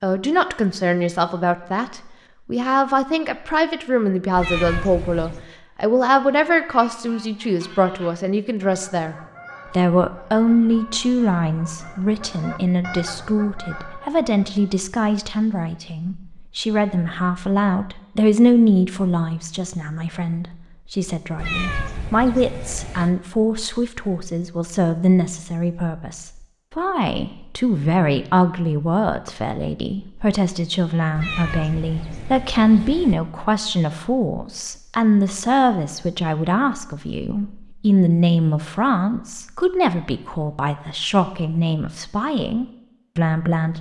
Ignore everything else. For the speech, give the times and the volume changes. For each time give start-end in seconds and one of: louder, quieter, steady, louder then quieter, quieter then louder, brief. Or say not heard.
0.0-43.7 steady.